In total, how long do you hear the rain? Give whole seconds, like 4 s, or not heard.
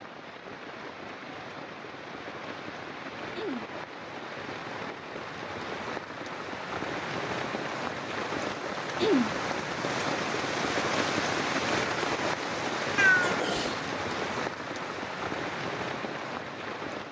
17 s.